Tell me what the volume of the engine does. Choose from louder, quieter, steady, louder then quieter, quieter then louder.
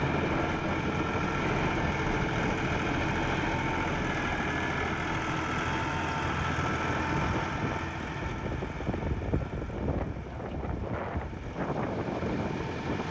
quieter.